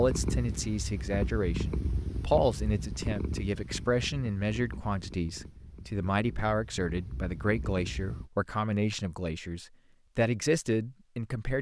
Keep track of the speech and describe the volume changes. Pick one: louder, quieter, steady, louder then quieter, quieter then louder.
steady.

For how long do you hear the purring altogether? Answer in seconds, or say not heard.
8 s.